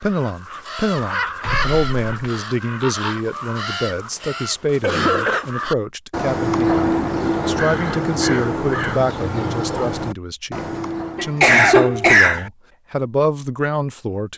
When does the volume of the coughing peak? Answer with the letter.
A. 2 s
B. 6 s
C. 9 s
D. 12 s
D.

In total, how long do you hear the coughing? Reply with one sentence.
You can hear the coughing for 3 seconds altogether.